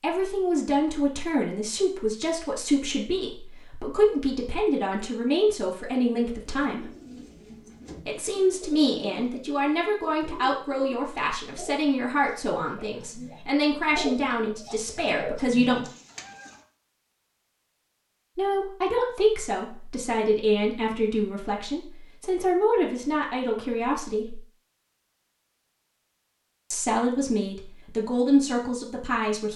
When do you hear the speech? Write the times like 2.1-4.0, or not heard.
0.0-6.8, 8.1-15.8, 18.4-24.4, 26.7-29.5.